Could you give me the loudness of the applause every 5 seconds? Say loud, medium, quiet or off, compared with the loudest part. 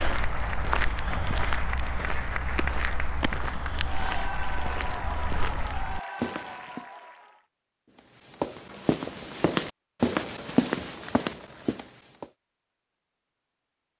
loud, loud, off.